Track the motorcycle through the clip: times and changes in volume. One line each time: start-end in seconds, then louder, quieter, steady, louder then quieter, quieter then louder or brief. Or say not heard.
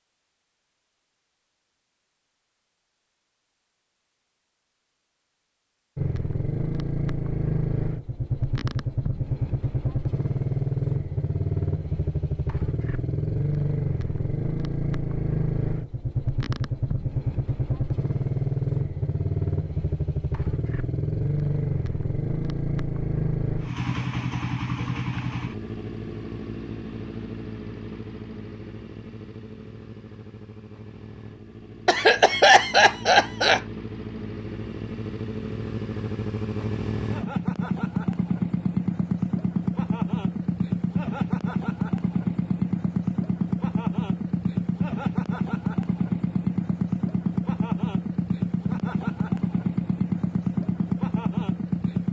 6.0-52.0 quieter then louder.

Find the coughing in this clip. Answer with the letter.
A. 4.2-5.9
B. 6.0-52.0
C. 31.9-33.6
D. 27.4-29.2
C.